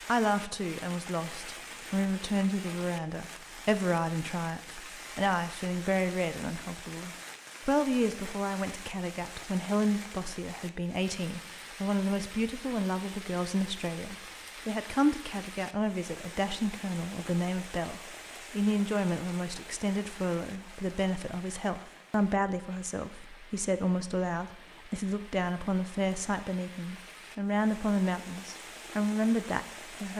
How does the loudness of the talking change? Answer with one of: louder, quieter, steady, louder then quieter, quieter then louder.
steady.